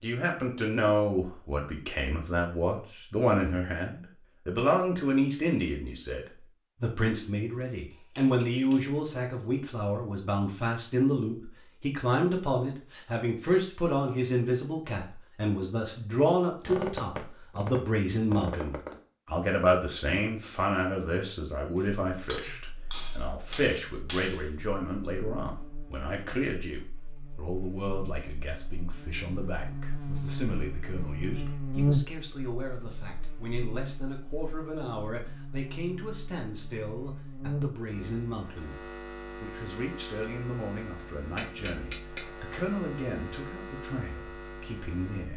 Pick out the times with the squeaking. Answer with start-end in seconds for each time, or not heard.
16.6-19.0.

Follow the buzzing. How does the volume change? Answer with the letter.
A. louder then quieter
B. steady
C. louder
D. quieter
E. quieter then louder
A.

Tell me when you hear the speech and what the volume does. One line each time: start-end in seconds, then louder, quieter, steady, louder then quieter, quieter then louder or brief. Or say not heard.
0.0-45.3 quieter.